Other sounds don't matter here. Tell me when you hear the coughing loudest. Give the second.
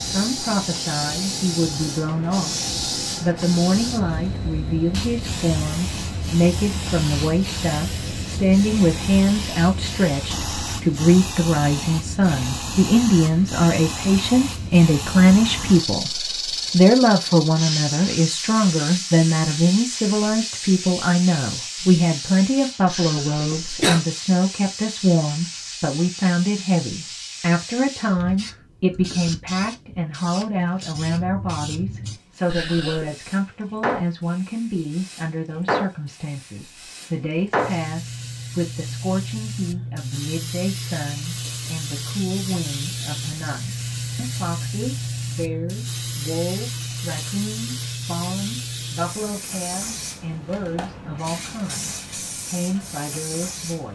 24 s.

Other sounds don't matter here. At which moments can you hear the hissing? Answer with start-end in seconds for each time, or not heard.
0.0-53.9.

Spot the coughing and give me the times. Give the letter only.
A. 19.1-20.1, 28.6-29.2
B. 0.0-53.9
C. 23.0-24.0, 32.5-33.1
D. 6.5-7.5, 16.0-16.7
C.